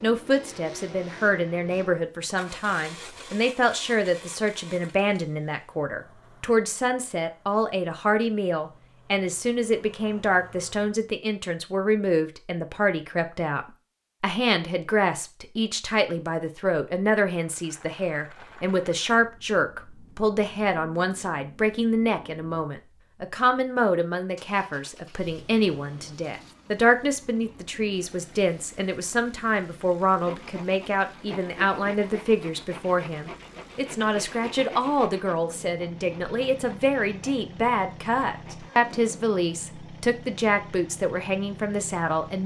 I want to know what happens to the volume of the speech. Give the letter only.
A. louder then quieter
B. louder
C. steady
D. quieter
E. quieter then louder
C.